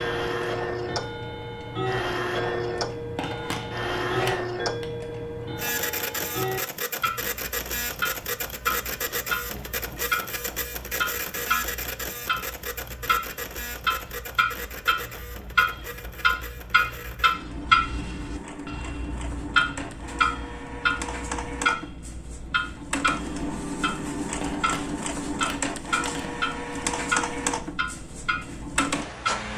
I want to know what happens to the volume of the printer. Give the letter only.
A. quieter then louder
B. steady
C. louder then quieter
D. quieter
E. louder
A.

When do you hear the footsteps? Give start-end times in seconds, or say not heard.
not heard.